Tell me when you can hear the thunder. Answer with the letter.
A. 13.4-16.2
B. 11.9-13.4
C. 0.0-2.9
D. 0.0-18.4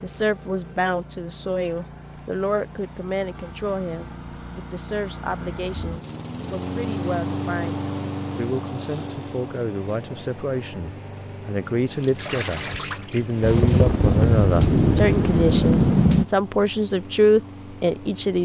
A.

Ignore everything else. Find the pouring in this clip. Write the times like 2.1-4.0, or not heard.
11.9-13.4.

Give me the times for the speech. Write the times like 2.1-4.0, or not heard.
0.0-18.4.